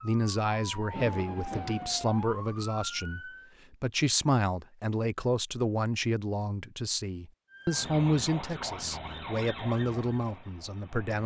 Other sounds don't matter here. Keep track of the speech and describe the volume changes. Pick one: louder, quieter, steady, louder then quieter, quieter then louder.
steady.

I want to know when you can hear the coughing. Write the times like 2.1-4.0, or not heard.
not heard.